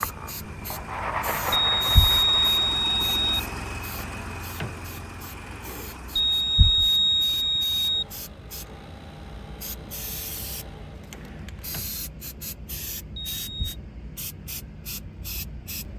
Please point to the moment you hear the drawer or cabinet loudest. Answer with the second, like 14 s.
5 s.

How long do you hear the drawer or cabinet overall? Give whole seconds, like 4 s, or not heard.
3 s.